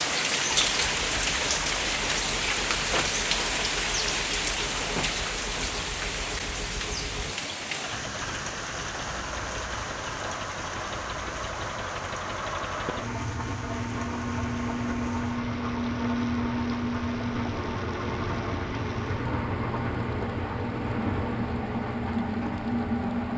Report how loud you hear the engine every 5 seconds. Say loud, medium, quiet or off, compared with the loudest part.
quiet, medium, loud, loud, loud.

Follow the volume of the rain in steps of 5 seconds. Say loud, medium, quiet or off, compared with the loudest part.
loud, medium, quiet, quiet, quiet.